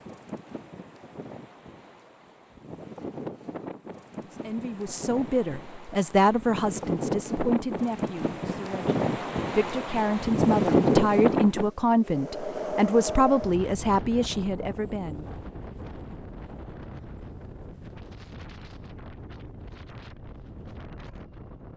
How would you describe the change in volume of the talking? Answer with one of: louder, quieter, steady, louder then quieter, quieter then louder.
quieter then louder.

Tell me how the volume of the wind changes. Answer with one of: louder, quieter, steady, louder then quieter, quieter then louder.
louder then quieter.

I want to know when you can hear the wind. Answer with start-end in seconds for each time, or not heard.
0.0-21.7.